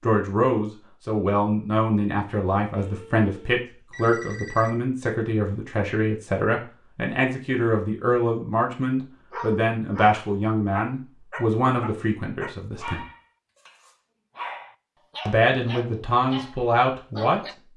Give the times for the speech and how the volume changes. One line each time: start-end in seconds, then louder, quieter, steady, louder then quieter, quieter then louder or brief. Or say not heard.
0.0-13.1 steady
15.2-17.4 brief.